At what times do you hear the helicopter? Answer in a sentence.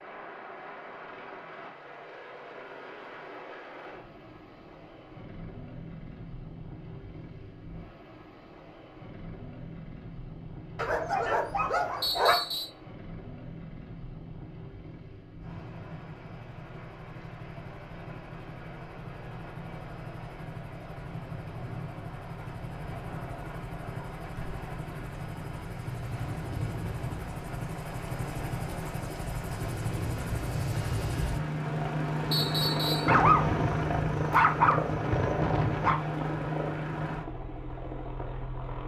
You can hear the helicopter from 0.0 to 38.8 s.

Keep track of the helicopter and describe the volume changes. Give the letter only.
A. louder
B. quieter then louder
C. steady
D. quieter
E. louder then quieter
A.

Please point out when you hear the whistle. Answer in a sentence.
You can hear the whistle from 12.0 to 12.7 s and from 32.3 to 33.1 s.